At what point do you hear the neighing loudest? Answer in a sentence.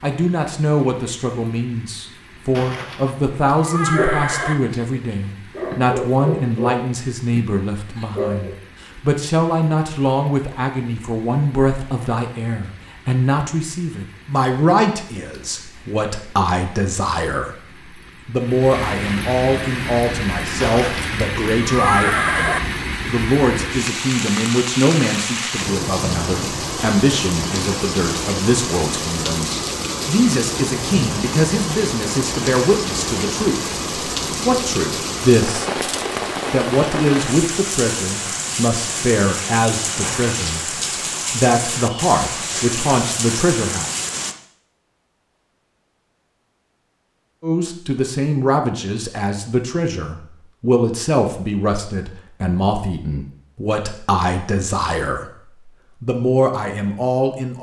The loudest moment of the neighing is at 22 seconds.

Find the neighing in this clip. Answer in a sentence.
The neighing can be heard from 2.5 to 4.5 s, from 20.6 to 22.6 s and from 40.0 to 40.5 s.